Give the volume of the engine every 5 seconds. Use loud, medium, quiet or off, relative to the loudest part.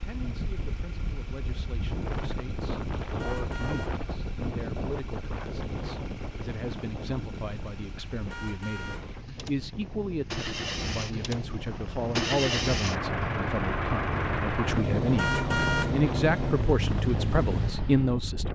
quiet, quiet, loud, loud.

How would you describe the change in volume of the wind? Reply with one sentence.
The volume of the wind goes down, then up.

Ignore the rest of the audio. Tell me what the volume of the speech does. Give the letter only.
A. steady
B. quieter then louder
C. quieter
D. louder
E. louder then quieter
D.